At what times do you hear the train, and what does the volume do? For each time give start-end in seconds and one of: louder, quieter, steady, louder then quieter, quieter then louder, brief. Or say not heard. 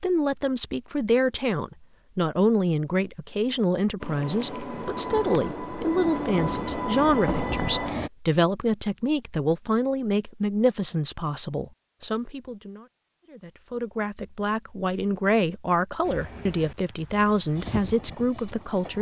4.0-8.1 louder
16.0-18.9 brief.